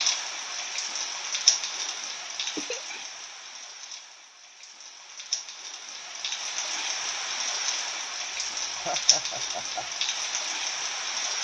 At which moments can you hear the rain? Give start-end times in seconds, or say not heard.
0.0-11.4.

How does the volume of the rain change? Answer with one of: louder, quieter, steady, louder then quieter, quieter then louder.
quieter then louder.